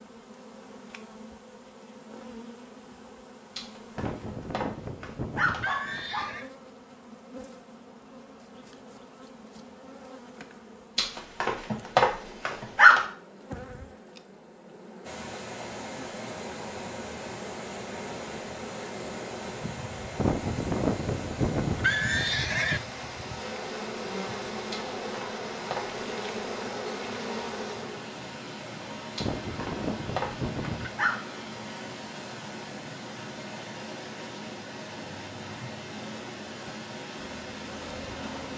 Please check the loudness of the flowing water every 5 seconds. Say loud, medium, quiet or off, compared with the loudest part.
off, off, off, loud, loud, loud, loud, loud.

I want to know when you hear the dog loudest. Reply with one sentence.
The volume of the dog peaks at 13 seconds.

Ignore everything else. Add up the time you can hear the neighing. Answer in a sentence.
You can hear the neighing for 7 seconds altogether.